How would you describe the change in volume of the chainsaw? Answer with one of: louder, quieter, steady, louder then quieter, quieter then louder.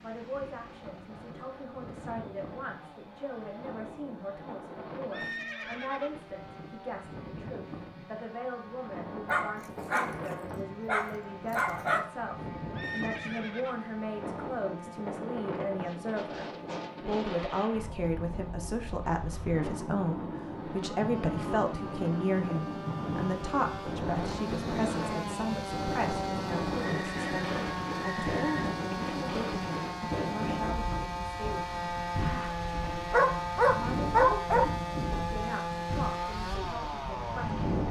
louder.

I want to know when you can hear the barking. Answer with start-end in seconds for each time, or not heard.
9.2-12.1, 33.1-34.6.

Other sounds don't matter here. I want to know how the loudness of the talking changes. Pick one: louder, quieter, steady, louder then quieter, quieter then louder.
louder then quieter.